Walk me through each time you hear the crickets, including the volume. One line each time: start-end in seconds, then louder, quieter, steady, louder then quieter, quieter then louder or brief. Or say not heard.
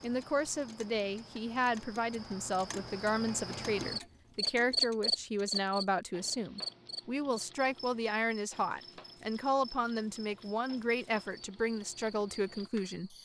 0.0-13.1 louder then quieter.